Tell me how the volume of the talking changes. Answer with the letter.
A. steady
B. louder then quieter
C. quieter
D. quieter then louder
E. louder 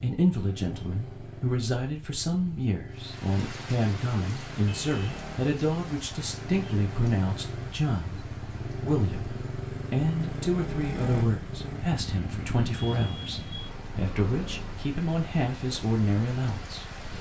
A.